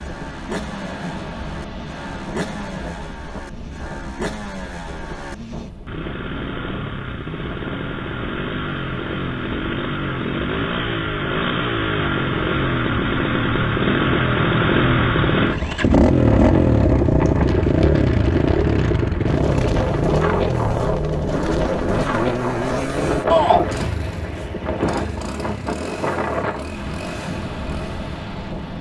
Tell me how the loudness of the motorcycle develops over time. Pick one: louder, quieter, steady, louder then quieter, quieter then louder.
louder then quieter.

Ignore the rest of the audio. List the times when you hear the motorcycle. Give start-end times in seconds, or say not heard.
0.0-28.7.